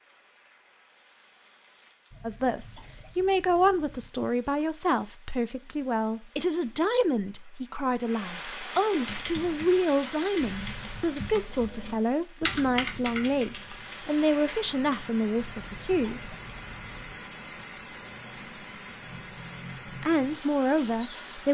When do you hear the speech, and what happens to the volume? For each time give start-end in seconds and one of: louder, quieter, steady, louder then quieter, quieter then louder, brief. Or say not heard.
2.2-16.3 steady
20.0-21.4 brief.